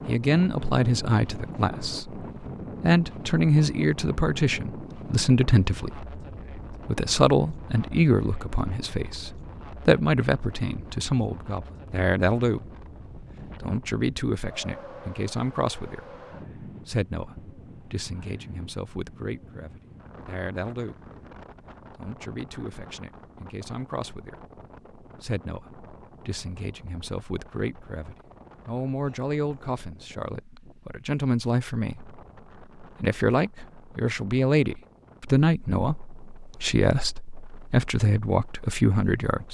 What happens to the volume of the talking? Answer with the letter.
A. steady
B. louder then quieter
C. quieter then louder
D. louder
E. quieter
C.